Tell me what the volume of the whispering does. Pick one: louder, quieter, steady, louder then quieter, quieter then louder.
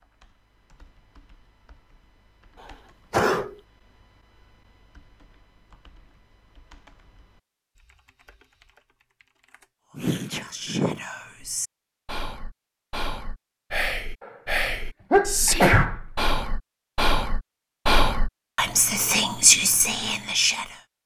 louder.